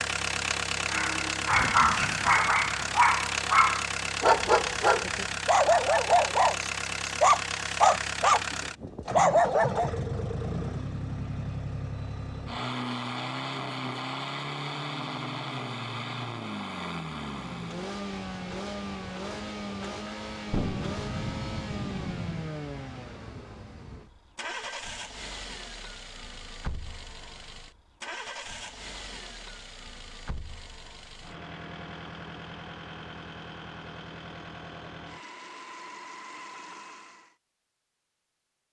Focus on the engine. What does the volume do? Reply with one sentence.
The volume of the engine goes down.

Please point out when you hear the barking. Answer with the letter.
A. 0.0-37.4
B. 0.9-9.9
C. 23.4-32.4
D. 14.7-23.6
B.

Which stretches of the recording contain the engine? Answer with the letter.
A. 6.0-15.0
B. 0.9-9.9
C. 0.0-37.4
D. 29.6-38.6
C.